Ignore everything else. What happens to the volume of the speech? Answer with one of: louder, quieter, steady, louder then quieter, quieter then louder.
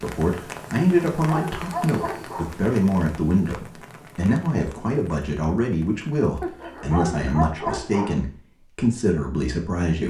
steady.